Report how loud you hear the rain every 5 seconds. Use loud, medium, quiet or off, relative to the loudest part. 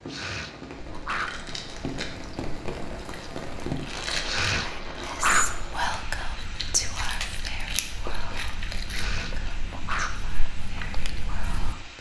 loud, medium, medium.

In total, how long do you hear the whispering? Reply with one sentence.
The whispering can be heard for 7 seconds in total.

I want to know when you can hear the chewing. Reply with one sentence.
The chewing can be heard from 0.8 to 11.8 s.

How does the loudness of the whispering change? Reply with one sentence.
The volume of the whispering goes down.